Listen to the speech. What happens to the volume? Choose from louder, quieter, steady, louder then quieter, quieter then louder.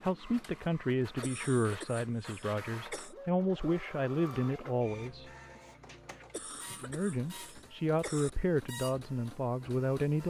steady.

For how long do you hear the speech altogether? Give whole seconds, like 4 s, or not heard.
9 s.